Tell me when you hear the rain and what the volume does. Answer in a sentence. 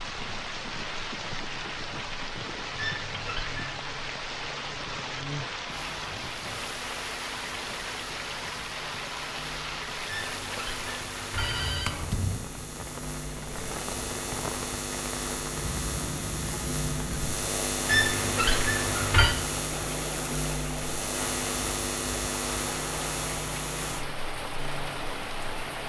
The rain can be heard from 0.0 to 25.8 s, at a steady volume.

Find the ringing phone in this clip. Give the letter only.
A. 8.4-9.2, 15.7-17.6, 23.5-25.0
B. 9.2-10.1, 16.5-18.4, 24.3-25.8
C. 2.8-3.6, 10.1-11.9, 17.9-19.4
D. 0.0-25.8
C.